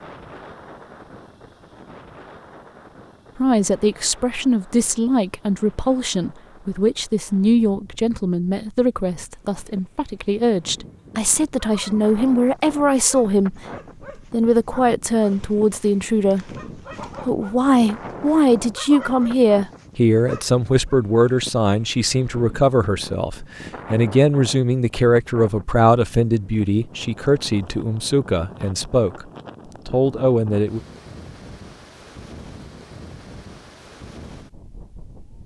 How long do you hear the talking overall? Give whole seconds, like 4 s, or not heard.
25 s.